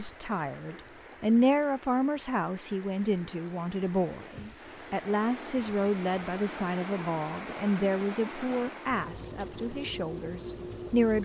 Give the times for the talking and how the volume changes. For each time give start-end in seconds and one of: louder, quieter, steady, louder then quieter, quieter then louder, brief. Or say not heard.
0.0-11.1 quieter.